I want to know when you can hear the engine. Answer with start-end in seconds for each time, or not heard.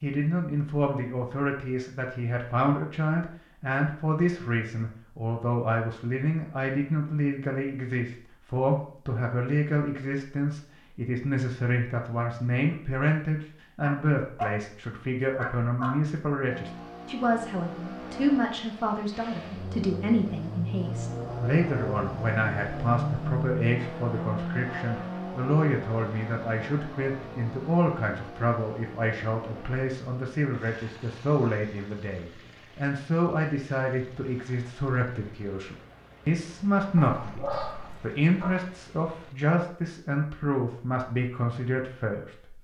16.4-39.4.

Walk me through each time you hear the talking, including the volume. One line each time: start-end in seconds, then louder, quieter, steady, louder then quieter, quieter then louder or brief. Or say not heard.
0.0-42.5 steady.